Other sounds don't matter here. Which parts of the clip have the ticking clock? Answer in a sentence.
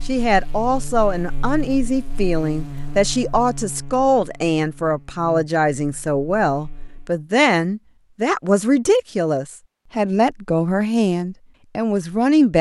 You can't hear the ticking clock here.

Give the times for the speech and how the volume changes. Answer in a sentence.
The speech can be heard from 0.1 to 12.5 s, at a steady volume.